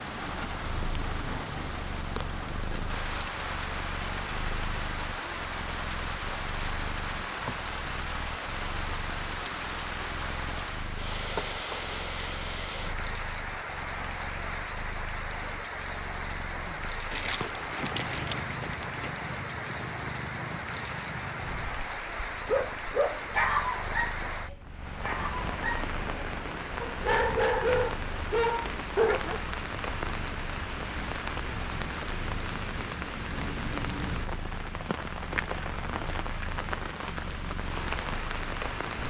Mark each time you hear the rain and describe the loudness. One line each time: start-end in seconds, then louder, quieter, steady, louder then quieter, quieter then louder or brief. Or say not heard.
0.0-39.0 steady.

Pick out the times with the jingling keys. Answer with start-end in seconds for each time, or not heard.
17.1-19.1.